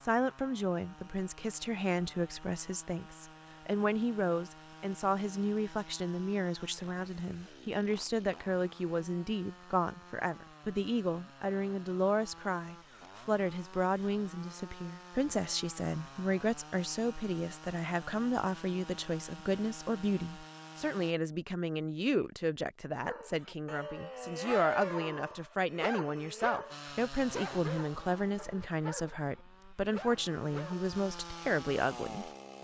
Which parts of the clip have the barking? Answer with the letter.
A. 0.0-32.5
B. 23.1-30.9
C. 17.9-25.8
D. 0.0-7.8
B.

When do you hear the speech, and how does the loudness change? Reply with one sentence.
The speech can be heard from 0.0 to 32.5 s, at a steady volume.